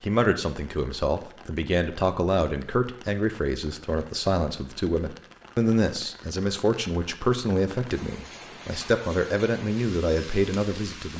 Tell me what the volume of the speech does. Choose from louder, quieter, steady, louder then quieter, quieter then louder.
steady.